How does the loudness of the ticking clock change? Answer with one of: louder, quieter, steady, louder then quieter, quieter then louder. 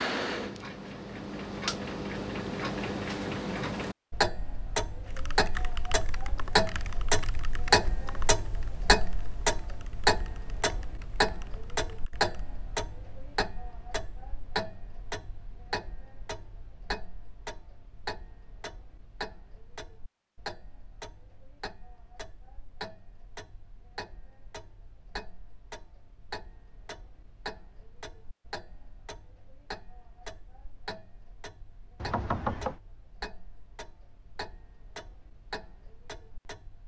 quieter.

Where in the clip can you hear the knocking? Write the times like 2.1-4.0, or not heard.
32.0-32.8.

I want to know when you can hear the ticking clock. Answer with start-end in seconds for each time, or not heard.
0.0-36.8.